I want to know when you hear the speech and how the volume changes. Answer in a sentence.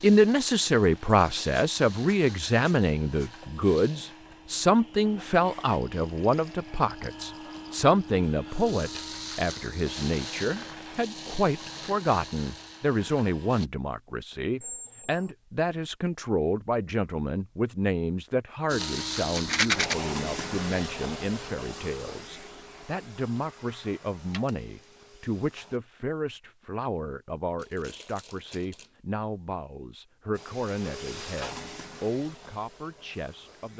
The speech can be heard from 0.0 to 33.7 s, getting quieter.